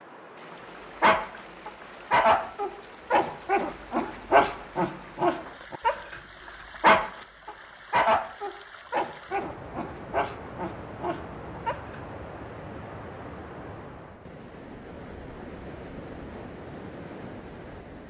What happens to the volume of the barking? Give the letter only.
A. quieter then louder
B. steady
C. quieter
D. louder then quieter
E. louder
C.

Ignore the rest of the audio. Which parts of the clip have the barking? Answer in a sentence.
You can hear the barking from 1.0 to 6.2 s and from 6.8 to 12.0 s.